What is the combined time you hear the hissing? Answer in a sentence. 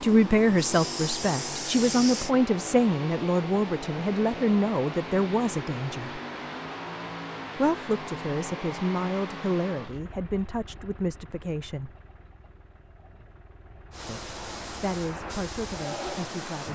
You can hear the hissing for 5 seconds altogether.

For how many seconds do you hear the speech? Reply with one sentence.
The speech can be heard for 13 seconds in total.